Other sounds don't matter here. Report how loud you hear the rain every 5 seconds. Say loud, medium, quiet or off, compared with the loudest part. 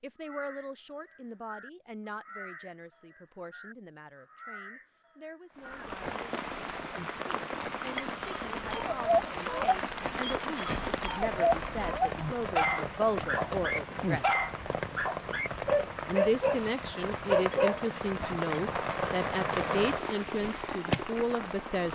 off, loud, loud, loud, loud.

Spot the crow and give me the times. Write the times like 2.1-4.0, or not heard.
0.2-5.8.